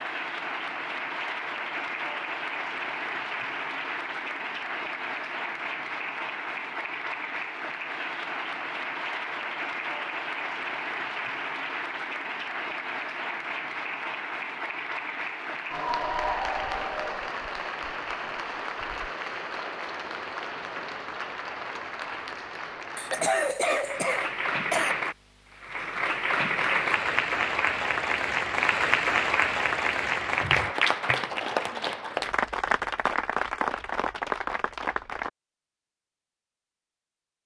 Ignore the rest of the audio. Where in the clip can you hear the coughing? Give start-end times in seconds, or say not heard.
22.9-24.9.